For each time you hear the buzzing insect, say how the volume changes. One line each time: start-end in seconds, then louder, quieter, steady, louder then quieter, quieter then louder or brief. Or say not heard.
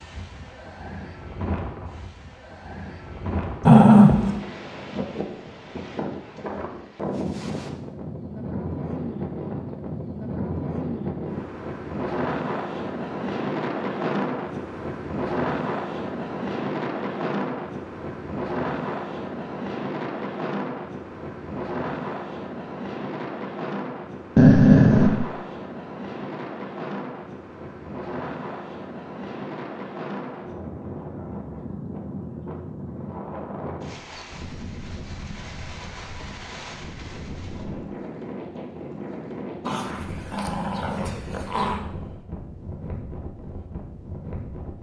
not heard.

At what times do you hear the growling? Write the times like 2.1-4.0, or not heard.
3.6-4.3, 24.4-25.1, 39.6-41.9.